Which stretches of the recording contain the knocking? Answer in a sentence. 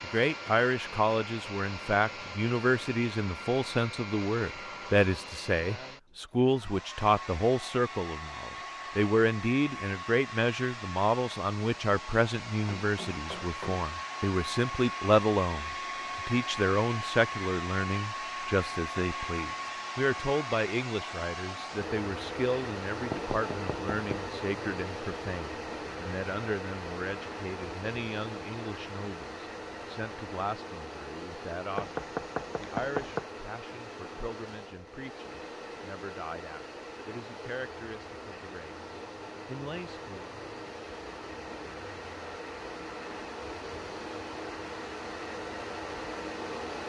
You can hear the knocking from 12.8 to 13.8 s, from 23.1 to 24.3 s and from 31.8 to 33.2 s.